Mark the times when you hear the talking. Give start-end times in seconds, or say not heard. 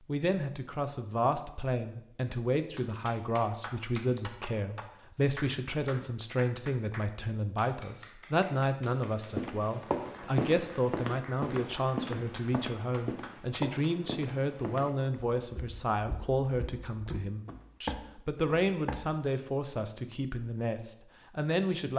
0.1-21.9.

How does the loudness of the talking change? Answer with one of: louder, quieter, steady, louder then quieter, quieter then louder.
steady.